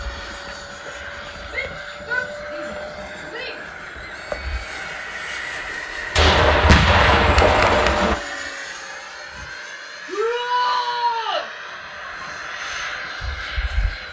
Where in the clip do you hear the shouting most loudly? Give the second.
11 s.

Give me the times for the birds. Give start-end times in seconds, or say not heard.
not heard.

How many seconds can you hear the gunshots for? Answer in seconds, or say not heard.
2 s.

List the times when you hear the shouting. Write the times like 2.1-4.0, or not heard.
1.5-3.6, 10.1-11.4.